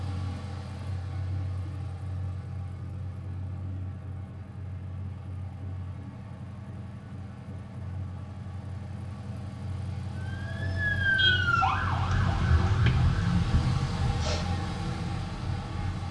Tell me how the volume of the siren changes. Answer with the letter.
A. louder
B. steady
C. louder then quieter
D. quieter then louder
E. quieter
E.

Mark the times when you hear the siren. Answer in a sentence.
The siren can be heard from 10.2 to 16.0 s.